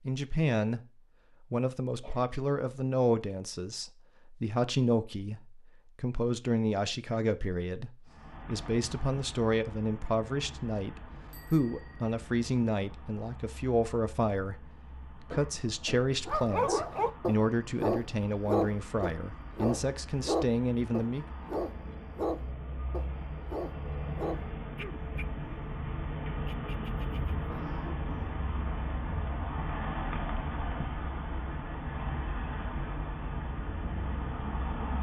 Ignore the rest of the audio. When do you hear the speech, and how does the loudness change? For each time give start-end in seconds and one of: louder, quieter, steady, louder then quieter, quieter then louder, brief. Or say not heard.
0.1-0.8 brief
1.5-21.2 steady.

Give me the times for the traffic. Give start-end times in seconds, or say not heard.
8.1-34.9.